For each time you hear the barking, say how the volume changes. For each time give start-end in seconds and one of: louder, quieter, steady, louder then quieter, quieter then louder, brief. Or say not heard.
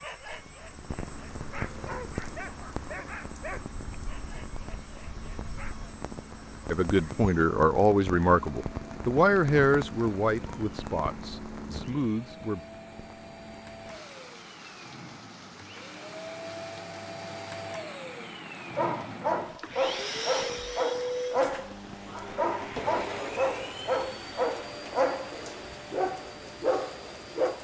0.0-5.8 louder then quieter
18.8-27.6 steady.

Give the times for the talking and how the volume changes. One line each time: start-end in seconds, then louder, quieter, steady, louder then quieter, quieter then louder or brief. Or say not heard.
6.7-12.6 quieter.